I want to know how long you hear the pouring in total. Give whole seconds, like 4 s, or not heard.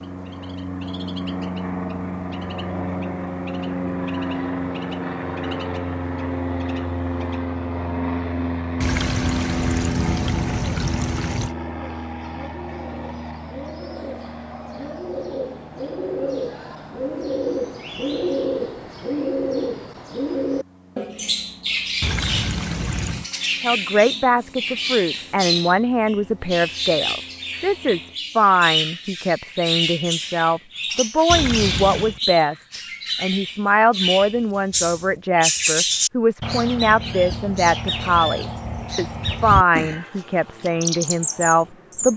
5 s.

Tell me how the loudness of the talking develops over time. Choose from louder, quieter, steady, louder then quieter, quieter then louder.
steady.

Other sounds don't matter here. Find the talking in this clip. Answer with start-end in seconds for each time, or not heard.
23.6-42.1.